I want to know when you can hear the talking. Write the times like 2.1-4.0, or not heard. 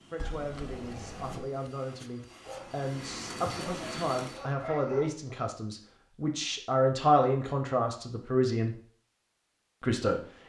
0.1-8.8, 9.8-10.4.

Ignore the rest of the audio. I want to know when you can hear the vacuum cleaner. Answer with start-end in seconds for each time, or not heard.
0.0-4.5.